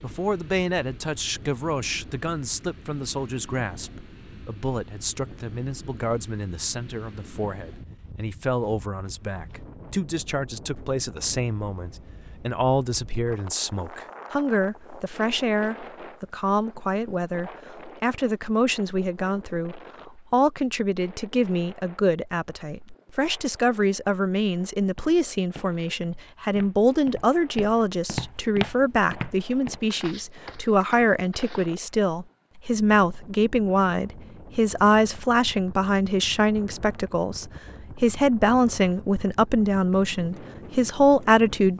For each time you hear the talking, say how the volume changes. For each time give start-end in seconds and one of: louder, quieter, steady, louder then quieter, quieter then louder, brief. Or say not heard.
0.0-41.7 louder.